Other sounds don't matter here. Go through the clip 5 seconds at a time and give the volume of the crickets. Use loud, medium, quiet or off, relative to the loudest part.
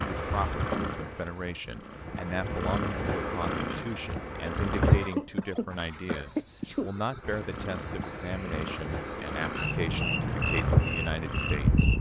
quiet, medium, loud.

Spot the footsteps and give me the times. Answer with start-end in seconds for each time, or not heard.
not heard.